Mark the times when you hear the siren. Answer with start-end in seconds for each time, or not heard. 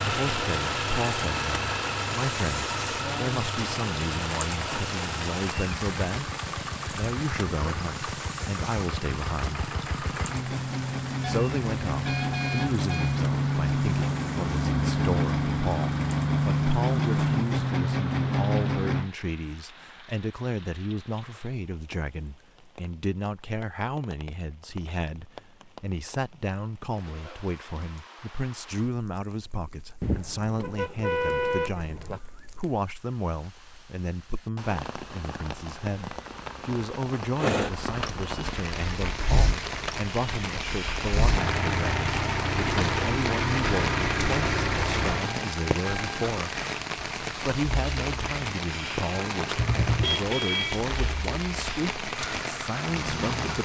not heard.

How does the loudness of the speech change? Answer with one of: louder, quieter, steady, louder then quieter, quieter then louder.
steady.